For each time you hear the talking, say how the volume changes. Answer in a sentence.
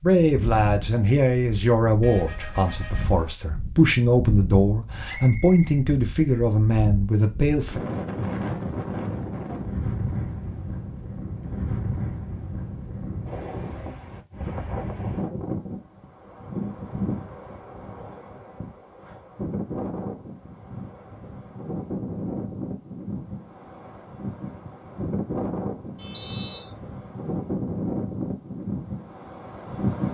You can hear the talking from 0.0 to 7.8 s, at a steady volume.